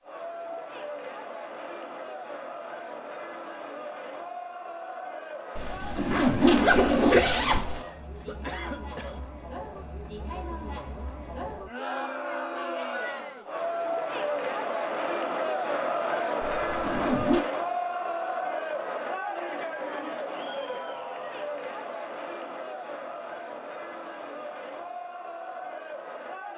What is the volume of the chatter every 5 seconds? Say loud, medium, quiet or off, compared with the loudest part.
medium, medium, loud, loud, medium, medium.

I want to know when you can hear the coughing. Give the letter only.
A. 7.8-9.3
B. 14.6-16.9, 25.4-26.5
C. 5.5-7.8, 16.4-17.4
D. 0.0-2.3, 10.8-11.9
A.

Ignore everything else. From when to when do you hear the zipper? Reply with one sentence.
The zipper can be heard from 5.5 to 7.8 s and from 16.4 to 17.4 s.